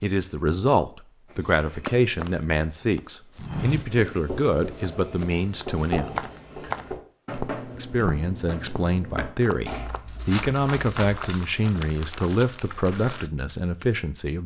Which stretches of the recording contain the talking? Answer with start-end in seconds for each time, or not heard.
0.0-6.2, 7.8-14.4.